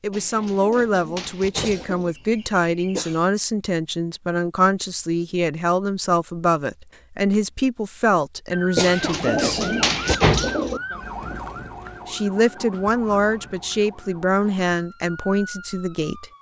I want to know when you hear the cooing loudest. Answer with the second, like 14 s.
10 s.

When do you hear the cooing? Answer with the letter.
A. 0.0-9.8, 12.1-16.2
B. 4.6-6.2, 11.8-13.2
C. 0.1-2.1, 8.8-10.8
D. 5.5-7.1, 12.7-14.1
C.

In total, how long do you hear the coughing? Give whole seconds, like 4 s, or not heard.
3 s.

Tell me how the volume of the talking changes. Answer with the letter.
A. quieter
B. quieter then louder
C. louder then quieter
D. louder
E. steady
E.